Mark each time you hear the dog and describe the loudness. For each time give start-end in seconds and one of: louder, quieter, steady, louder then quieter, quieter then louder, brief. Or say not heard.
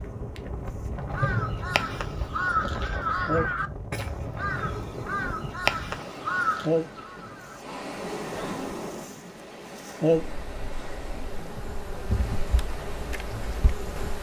not heard.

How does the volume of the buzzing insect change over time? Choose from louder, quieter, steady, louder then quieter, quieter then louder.
louder then quieter.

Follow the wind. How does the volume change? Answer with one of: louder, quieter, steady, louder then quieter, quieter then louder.
quieter.